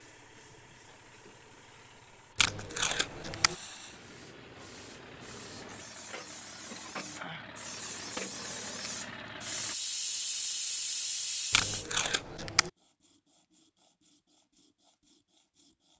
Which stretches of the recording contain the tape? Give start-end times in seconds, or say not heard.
2.4-3.5, 11.5-12.7.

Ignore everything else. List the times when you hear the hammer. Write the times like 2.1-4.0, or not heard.
not heard.